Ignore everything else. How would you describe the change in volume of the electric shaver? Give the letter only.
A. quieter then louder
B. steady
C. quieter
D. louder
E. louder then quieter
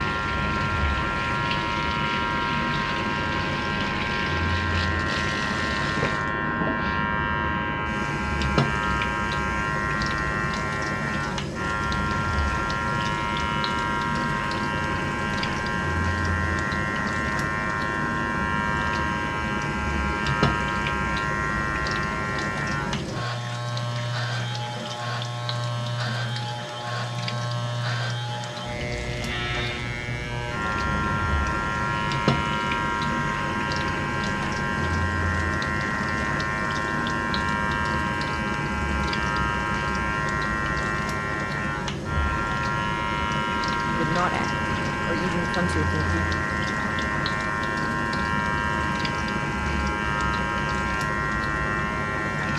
B.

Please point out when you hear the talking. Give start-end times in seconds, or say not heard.
43.9-46.2.